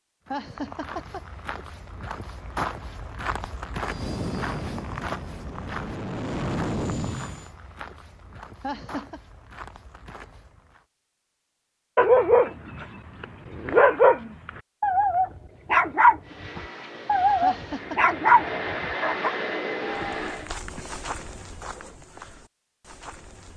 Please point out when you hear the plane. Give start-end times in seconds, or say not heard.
3.8-7.5, 16.2-20.6.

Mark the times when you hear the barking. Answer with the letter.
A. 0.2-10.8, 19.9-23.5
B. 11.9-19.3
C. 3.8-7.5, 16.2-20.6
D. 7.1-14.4
B.